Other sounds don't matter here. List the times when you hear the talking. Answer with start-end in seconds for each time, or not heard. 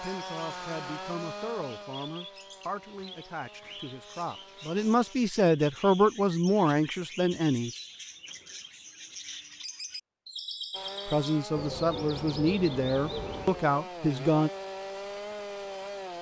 0.0-7.7, 11.1-14.5.